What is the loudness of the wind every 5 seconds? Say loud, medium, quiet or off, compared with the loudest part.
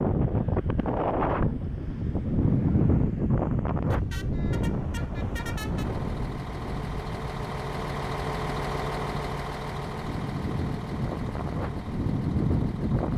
loud, medium, loud.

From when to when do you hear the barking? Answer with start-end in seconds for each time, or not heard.
not heard.